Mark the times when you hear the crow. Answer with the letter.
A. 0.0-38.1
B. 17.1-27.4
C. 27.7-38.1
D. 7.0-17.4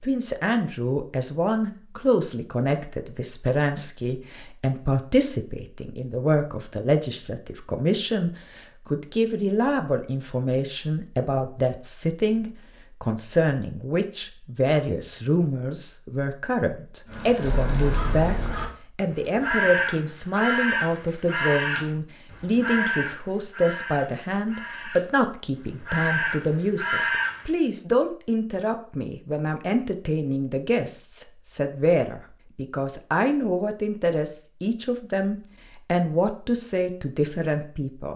B.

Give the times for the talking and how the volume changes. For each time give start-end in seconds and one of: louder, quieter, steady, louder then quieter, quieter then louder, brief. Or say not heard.
0.0-38.1 steady.